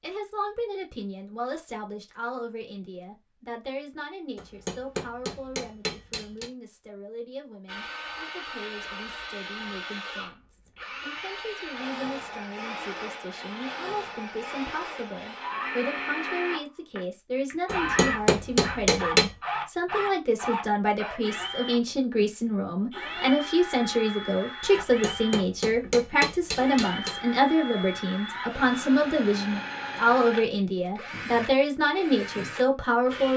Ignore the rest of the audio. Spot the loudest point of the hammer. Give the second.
19 s.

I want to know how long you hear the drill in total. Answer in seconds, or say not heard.
26 s.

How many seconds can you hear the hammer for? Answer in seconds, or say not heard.
6 s.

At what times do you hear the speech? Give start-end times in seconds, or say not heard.
0.0-33.3.